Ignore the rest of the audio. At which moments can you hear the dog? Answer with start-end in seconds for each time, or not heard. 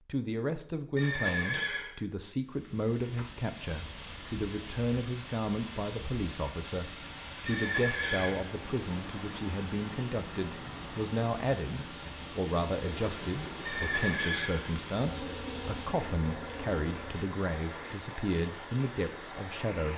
not heard.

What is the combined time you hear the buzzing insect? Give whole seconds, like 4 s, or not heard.
4 s.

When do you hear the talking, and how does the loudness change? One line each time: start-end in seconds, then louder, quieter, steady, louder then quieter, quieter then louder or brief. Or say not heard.
0.1-19.9 steady.